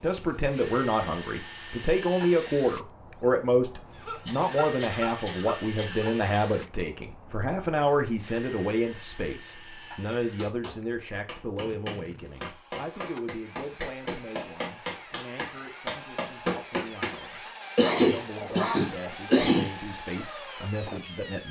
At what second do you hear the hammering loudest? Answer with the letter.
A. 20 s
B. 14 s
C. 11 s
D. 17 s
D.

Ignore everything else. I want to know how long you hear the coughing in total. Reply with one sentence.
You can hear the coughing for 4 seconds altogether.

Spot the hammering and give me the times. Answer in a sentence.
You can hear the hammering from 10.2 to 17.2 s.